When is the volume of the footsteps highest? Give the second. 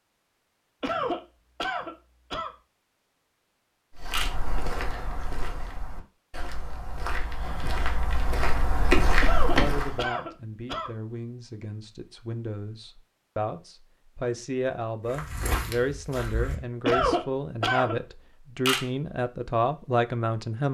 9 s.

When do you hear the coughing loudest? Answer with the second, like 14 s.
17 s.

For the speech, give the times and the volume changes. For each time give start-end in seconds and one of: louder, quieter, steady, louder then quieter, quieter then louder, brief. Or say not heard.
9.4-20.6 louder.